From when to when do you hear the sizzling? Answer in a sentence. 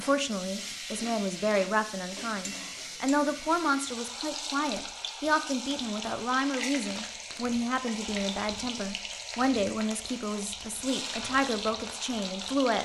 You can hear the sizzling from 0.0 to 12.8 s.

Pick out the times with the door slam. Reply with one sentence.
The door slam can't be heard in this clip.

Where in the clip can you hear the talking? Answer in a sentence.
The talking can be heard from 0.0 to 12.8 s.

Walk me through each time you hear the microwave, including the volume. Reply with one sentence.
You can't hear the microwave here.